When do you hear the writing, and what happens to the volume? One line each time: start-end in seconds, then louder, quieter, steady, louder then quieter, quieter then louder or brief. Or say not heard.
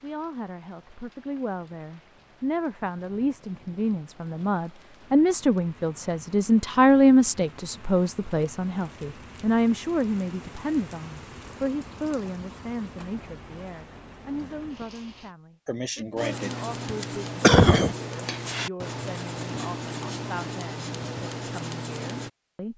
16.1-22.3 steady.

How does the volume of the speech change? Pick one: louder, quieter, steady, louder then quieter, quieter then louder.
louder then quieter.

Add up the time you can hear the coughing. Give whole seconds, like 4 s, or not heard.
2 s.